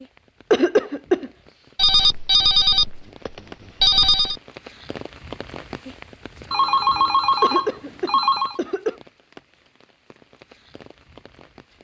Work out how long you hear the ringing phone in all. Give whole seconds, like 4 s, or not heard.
5 s.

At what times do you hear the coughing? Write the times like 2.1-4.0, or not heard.
0.5-1.3, 7.4-8.9.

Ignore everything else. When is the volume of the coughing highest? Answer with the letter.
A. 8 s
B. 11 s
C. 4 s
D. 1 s
D.